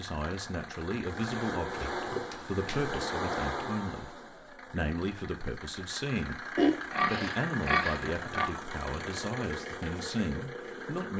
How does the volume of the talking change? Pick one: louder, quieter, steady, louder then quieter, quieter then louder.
steady.